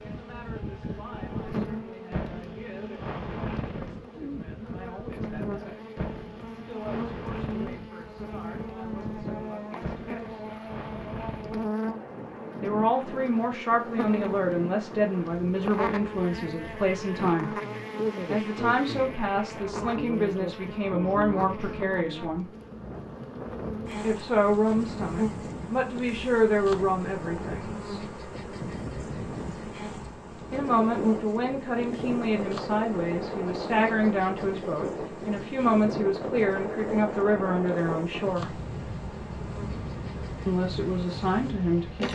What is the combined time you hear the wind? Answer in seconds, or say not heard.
42 s.